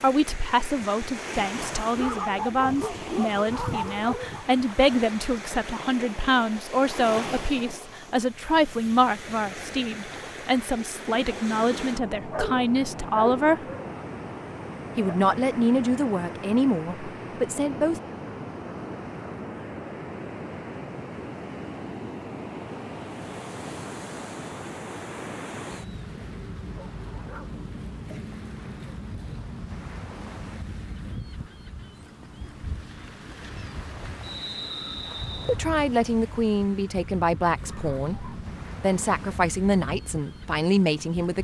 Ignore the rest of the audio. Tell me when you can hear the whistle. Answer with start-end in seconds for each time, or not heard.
34.2-35.6.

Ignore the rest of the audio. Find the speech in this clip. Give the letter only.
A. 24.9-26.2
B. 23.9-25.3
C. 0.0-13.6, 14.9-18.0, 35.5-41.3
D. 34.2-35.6
C.